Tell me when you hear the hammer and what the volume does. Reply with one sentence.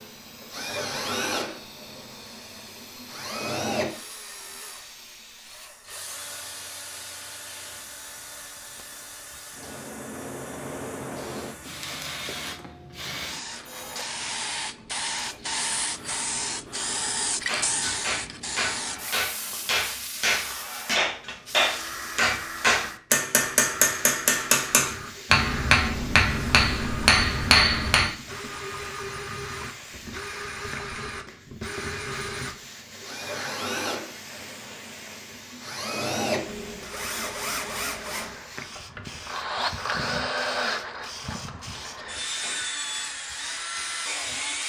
You can hear the hammer from 17.4 to 28.1 s, getting louder.